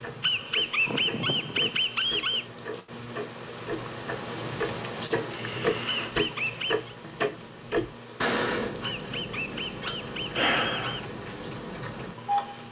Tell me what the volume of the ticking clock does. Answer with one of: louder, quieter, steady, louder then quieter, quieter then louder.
louder then quieter.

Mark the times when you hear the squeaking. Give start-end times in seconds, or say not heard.
0.2-2.5, 5.8-7.0, 8.8-11.1.